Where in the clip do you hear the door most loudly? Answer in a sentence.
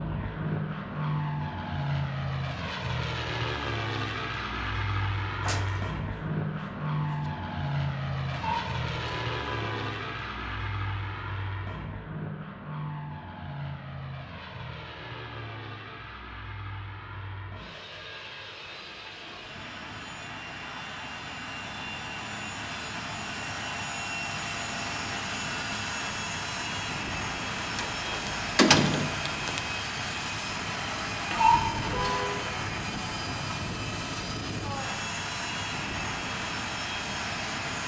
The volume of the door peaks at 29 seconds.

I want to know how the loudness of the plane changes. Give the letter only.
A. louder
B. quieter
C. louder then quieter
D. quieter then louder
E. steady
D.